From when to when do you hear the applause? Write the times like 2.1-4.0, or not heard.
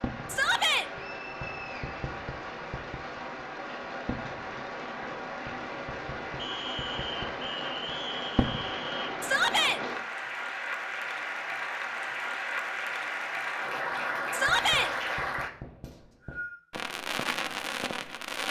0.0-15.5.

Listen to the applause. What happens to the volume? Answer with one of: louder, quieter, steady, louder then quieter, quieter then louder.
louder.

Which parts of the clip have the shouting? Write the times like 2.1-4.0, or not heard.
0.2-0.9, 9.2-9.8, 14.3-14.9.